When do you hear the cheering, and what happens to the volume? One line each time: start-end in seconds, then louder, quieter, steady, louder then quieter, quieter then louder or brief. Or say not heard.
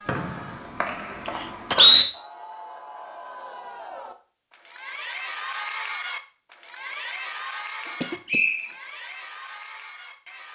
0.0-10.5 louder then quieter.